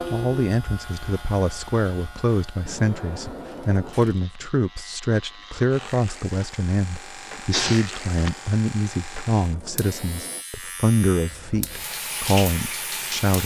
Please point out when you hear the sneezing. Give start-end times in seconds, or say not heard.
7.5-8.3.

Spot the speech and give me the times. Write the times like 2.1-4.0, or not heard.
0.1-13.4.